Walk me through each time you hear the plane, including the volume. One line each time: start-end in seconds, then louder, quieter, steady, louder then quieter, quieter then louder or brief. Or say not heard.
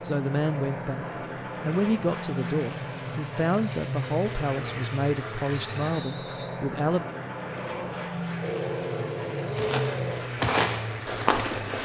0.0-11.8 steady.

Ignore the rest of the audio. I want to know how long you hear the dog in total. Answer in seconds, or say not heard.
3 s.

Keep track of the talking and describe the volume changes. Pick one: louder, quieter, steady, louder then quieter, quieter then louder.
steady.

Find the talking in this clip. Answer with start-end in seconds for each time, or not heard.
0.0-7.0.